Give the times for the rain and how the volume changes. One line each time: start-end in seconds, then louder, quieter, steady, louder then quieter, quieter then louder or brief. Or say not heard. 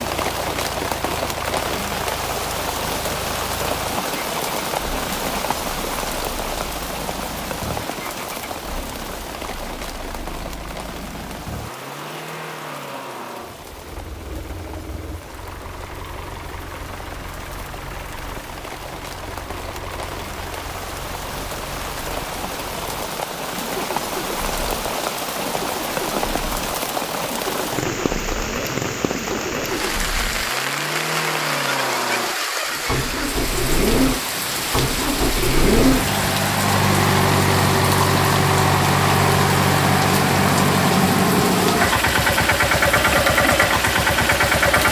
0.0-44.8 quieter then louder.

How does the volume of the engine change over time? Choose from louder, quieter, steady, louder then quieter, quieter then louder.
louder.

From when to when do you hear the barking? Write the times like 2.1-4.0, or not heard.
not heard.